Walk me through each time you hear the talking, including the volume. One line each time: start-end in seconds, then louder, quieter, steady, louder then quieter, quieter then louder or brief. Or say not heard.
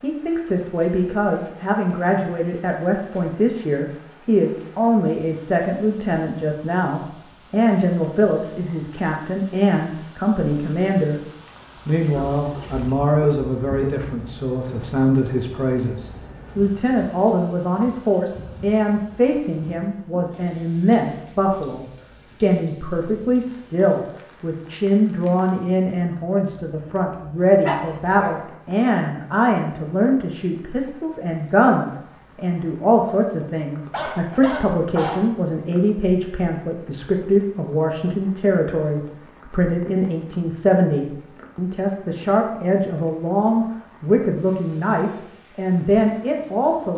0.0-11.2 steady
11.8-46.9 steady.